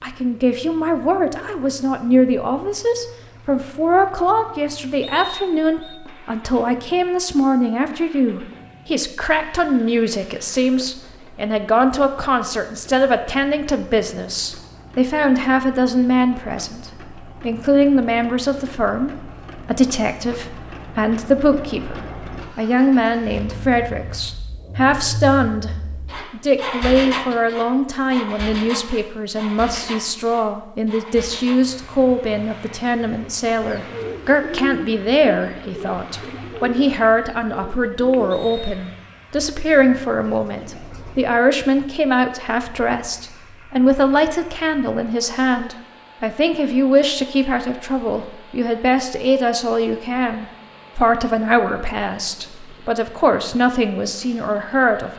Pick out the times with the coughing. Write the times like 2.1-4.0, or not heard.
not heard.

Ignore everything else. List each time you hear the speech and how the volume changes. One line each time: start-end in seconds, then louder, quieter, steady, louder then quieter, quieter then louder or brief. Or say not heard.
0.0-55.1 steady.